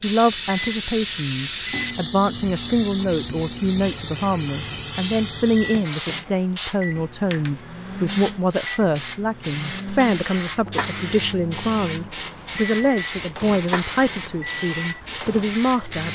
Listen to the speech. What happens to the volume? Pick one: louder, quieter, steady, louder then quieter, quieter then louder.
steady.